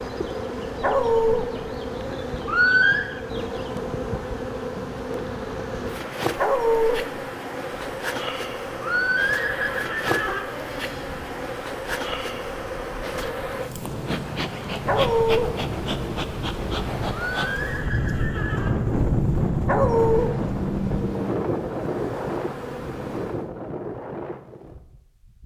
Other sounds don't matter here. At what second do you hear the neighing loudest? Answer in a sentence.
The volume of the neighing peaks at 3 seconds.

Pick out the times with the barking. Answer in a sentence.
You can hear the barking from 0.8 to 1.4 s, from 6.3 to 7.0 s, from 14.8 to 15.5 s and from 19.6 to 20.3 s.